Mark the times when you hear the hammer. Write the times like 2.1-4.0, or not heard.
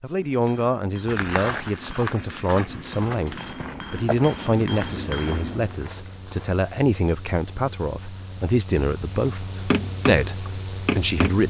0.3-5.8, 9.2-11.4.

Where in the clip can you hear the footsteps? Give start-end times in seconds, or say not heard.
1.1-6.7.